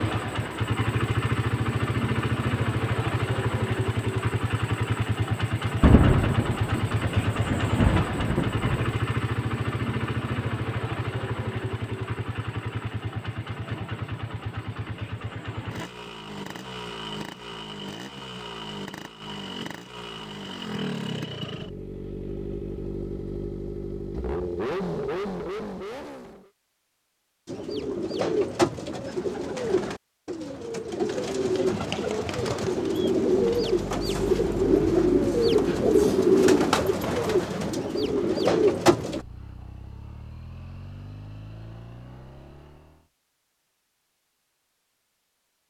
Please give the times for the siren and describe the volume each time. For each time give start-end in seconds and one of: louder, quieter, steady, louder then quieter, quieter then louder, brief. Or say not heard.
not heard.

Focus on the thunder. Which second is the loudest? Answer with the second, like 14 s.
6 s.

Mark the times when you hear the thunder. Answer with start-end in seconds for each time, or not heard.
5.8-8.9.